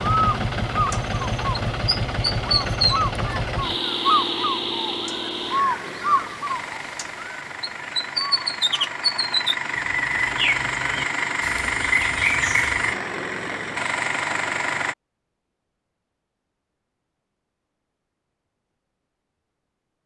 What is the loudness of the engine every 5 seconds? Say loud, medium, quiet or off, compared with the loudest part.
loud, medium, loud, off.